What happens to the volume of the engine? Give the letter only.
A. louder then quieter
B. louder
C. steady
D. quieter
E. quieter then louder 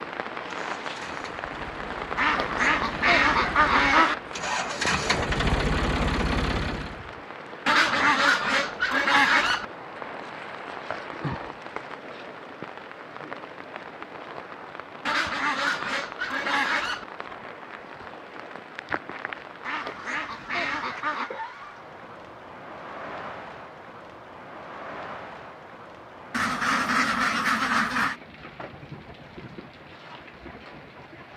B.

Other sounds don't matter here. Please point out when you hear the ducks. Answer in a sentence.
The ducks can be heard from 2.1 to 4.2 s, from 7.7 to 9.7 s, from 15.1 to 17.1 s, from 19.6 to 21.3 s and from 26.3 to 28.1 s.